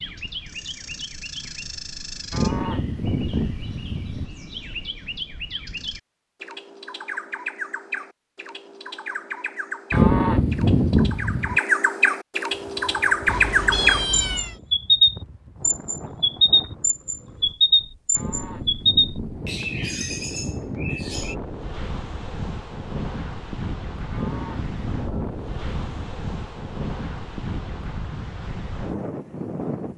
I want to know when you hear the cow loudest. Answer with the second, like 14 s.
10 s.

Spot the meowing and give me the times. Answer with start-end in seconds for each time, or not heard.
13.2-14.6.